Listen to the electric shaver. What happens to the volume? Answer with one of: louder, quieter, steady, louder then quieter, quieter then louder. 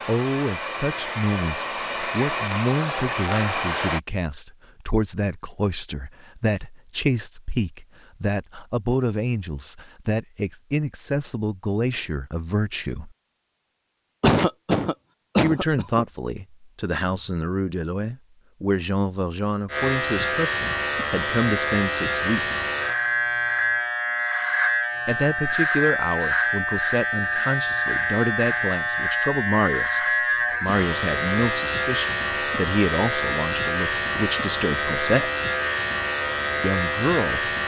steady.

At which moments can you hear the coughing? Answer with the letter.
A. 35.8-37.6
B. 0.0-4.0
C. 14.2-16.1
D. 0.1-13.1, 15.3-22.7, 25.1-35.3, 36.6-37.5
C.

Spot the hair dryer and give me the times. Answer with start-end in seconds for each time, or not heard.
0.0-4.0.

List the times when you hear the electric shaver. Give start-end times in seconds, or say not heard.
19.6-37.6.